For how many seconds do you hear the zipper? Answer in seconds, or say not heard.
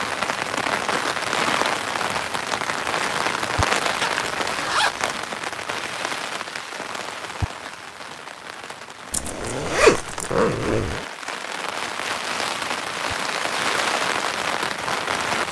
3 s.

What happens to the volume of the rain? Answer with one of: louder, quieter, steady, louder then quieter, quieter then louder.
quieter then louder.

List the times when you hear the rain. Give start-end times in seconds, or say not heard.
0.0-15.4.